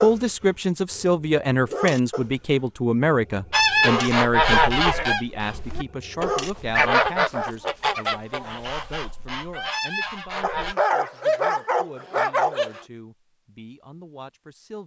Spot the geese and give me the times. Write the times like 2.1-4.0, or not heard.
3.5-10.8.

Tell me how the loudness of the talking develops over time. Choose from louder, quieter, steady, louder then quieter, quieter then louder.
quieter.